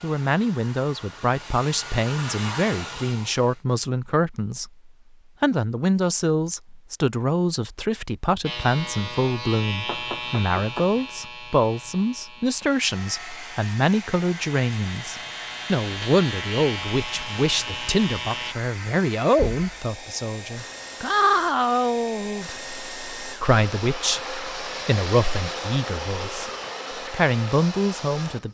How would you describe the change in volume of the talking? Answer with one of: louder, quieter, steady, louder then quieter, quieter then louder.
steady.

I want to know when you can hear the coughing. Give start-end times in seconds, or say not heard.
not heard.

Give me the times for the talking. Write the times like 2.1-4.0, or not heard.
0.0-28.4.